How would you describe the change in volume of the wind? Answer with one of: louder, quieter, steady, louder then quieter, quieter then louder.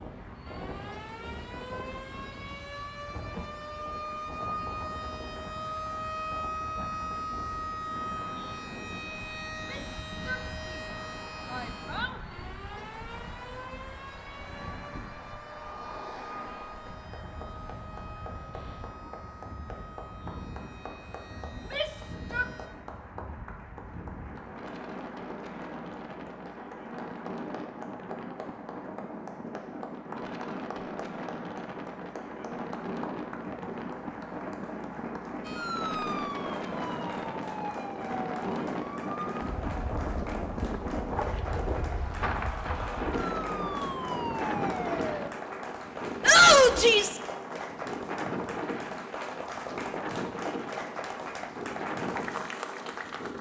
louder.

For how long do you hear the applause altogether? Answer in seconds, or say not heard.
53 s.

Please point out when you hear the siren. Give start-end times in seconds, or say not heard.
0.0-22.7, 35.5-45.3.